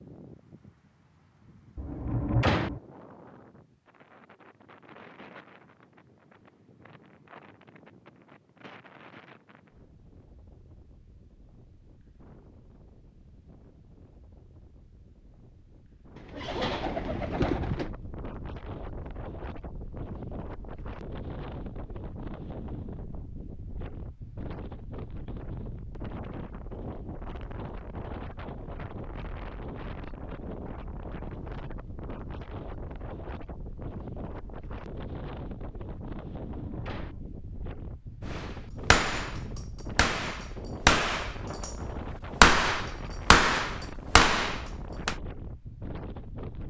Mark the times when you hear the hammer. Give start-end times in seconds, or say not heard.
38.4-45.1.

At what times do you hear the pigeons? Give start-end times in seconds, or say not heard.
16.1-17.9.